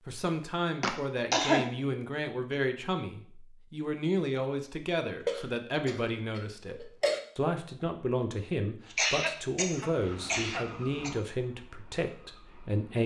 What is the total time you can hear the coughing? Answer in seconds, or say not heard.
5 s.